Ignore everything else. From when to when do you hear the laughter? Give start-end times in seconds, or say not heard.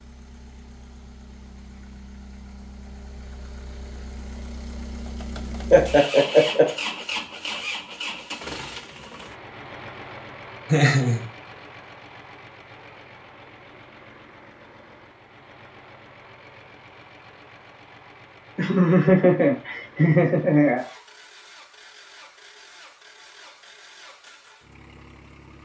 5.7-6.7, 10.7-11.2, 18.6-20.9.